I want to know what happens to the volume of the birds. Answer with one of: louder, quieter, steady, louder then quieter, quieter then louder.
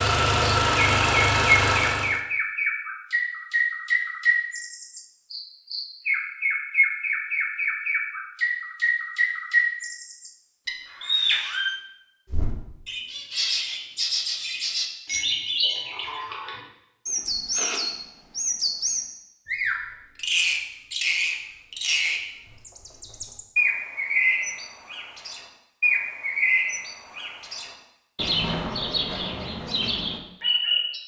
steady.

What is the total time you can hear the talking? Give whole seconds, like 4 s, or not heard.
not heard.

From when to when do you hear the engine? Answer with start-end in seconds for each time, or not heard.
0.0-2.2.